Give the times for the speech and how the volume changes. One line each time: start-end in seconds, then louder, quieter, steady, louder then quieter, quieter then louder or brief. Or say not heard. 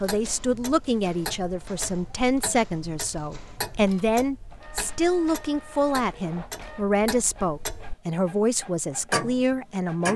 0.0-10.1 steady.